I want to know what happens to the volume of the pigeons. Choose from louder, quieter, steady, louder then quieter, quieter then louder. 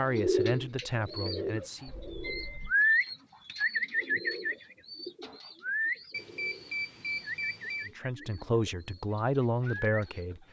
louder then quieter.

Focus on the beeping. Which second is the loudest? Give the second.
7 s.